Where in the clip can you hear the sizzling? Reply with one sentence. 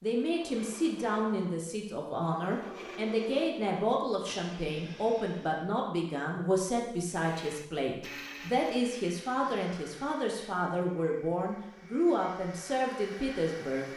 The sizzling can't be heard in this clip.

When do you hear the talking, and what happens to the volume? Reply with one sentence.
You can hear the talking from 0.0 to 13.9 s, at a steady volume.